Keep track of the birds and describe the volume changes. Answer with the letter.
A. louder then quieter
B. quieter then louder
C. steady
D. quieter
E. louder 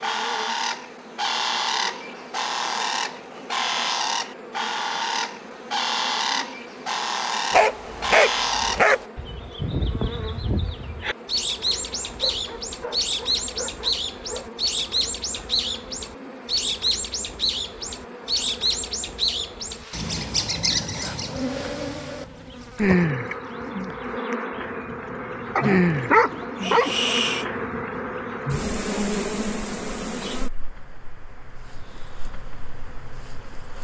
D.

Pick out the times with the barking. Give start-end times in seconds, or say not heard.
7.5-9.1, 12.1-14.5, 25.6-27.4.